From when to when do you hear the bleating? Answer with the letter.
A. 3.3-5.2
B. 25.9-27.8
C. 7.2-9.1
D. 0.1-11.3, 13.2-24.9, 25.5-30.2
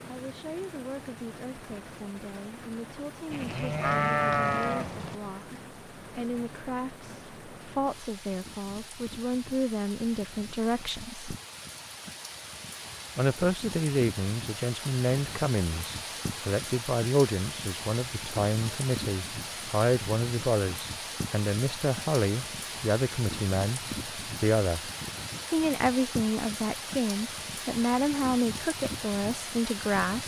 A.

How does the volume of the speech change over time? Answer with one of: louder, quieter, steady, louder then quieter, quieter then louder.
louder.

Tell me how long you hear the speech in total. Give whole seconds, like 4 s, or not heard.
28 s.